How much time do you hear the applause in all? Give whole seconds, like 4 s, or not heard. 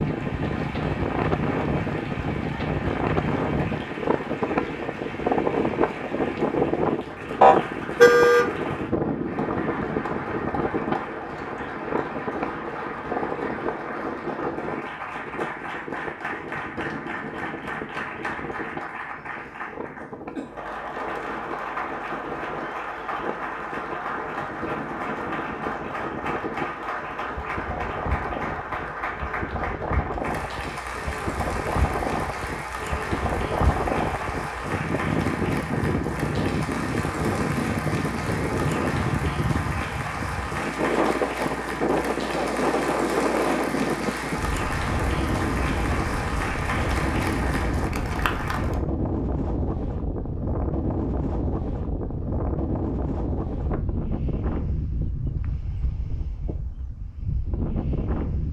49 s.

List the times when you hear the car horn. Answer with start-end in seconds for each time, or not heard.
7.4-8.5.